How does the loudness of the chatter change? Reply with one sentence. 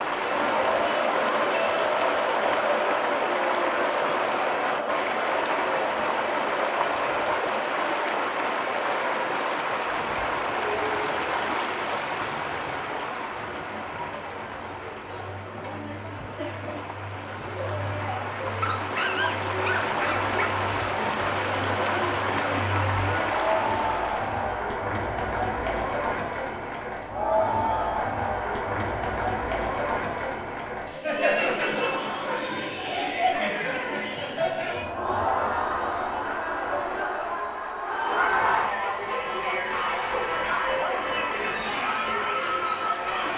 The volume of the chatter goes down, then up.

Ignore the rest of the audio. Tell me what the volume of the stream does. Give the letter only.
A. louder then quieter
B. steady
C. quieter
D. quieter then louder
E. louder
D.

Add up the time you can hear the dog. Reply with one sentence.
You can hear the dog for 2 seconds altogether.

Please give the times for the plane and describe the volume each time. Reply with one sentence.
You can't hear the plane here.